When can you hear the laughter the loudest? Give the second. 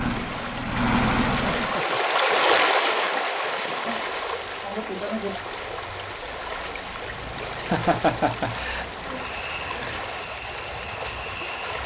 8 s.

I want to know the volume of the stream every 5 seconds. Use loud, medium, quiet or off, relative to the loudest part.
loud, medium, medium.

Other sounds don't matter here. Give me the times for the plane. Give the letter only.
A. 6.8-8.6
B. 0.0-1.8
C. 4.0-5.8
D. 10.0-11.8
B.